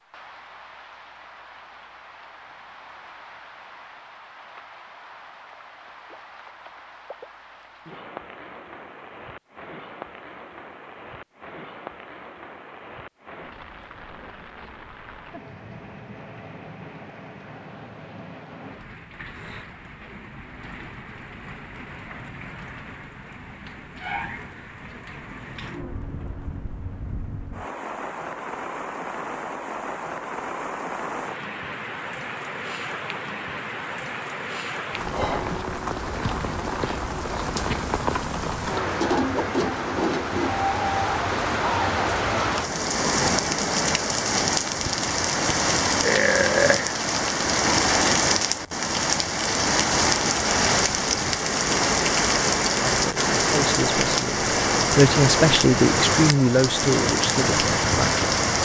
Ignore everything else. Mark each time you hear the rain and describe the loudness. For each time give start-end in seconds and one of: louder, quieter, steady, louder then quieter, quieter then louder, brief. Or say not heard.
0.0-58.6 louder.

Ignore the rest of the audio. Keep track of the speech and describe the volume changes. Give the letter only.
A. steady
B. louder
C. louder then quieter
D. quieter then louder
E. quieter
C.